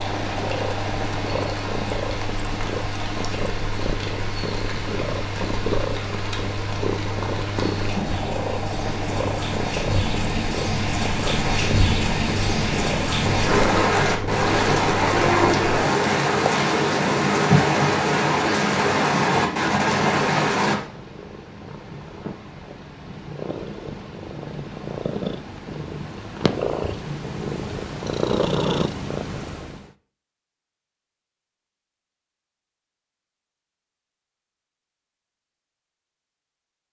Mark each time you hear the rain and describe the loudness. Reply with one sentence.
The rain can be heard from 0.0 to 20.8 s, getting louder.